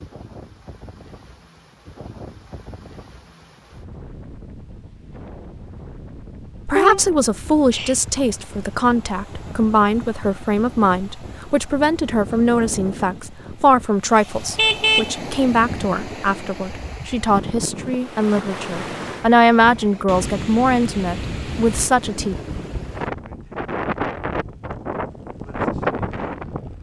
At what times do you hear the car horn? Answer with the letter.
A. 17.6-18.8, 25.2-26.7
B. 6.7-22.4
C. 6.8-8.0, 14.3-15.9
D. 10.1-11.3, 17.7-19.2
C.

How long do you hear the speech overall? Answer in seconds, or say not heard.
16 s.